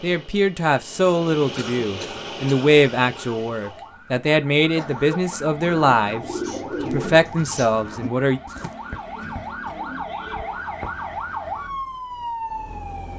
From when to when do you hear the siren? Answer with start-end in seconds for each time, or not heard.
2.1-13.1.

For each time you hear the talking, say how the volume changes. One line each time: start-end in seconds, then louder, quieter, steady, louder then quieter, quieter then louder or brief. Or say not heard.
0.0-8.4 steady.